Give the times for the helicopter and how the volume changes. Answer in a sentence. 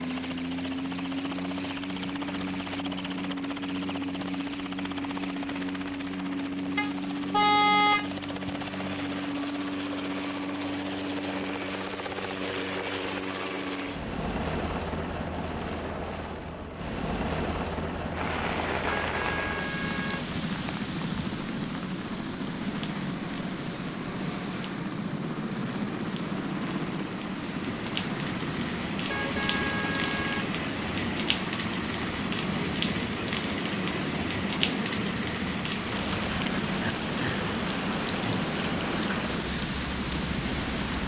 The helicopter can be heard from 0.0 to 41.0 s, at a steady volume.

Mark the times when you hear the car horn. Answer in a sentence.
The car horn can be heard from 6.8 to 8.5 s, from 19.1 to 20.2 s and from 29.1 to 30.5 s.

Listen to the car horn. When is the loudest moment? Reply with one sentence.
The loudest moment of the car horn is at 8 seconds.